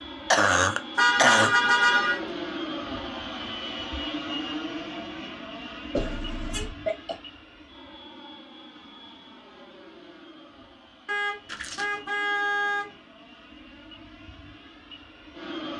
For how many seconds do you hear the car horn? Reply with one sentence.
You can hear the car horn for 4 seconds altogether.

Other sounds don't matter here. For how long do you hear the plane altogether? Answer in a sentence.
You can hear the plane for 16 seconds altogether.